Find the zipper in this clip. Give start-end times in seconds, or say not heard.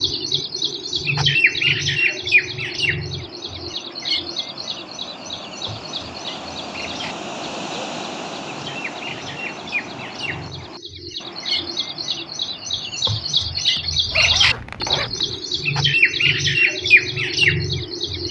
14.1-15.4.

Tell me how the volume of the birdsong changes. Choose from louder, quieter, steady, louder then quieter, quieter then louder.
quieter then louder.